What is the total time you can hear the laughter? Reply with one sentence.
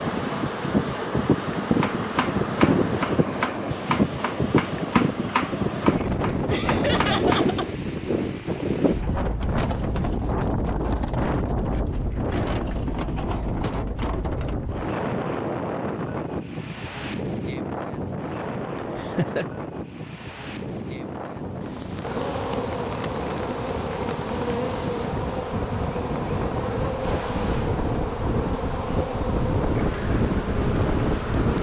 You can hear the laughter for 3 seconds altogether.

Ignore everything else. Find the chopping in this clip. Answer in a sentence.
You can hear the chopping from 1.7 to 7.5 s.